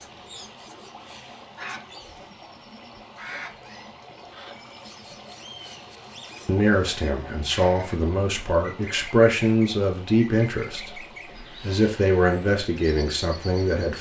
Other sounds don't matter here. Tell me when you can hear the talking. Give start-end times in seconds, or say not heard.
6.5-13.9.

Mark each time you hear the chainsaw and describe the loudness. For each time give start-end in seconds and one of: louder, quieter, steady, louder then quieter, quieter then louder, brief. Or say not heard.
not heard.